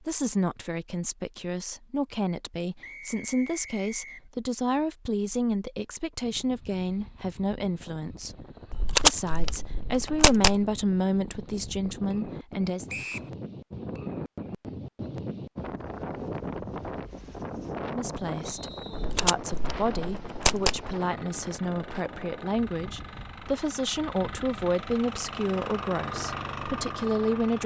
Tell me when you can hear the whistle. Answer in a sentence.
The whistle can be heard from 2.8 to 4.2 s, from 12.8 to 13.3 s and from 18.4 to 19.1 s.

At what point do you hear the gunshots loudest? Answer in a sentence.
The volume of the gunshots peaks at 9 seconds.